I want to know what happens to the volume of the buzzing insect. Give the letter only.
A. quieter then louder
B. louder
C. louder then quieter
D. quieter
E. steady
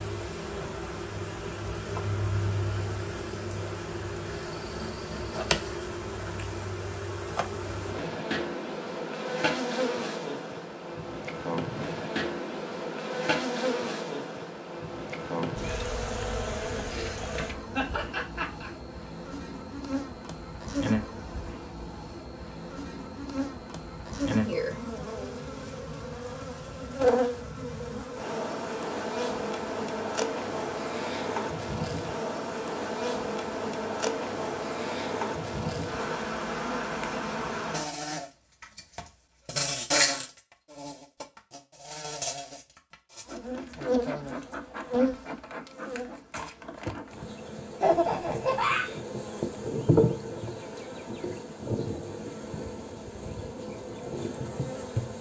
E.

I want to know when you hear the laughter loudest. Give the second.
48 s.